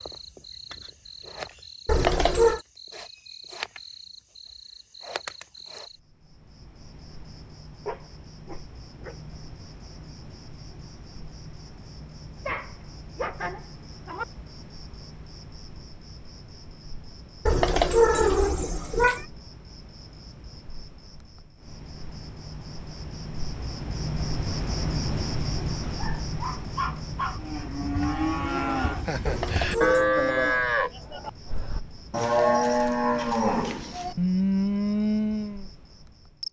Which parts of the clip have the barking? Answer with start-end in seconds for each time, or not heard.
7.8-9.2, 12.4-14.2, 25.8-27.4.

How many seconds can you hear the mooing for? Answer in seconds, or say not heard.
8 s.